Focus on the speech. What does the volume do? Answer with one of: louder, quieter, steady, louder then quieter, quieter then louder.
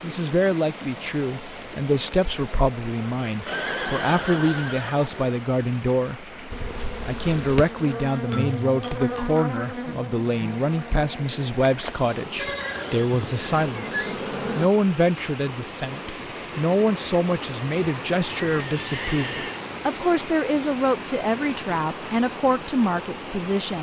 steady.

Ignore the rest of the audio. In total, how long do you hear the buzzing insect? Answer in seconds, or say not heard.
8 s.